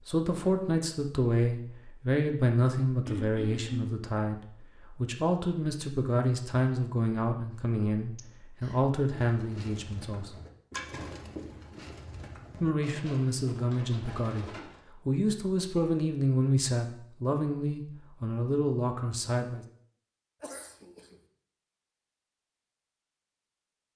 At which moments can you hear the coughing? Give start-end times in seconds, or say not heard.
3.0-4.0, 8.2-8.8, 20.4-21.2.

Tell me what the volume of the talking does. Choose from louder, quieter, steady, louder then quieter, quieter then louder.
steady.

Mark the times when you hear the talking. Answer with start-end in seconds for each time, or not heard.
0.1-10.3, 12.6-19.6.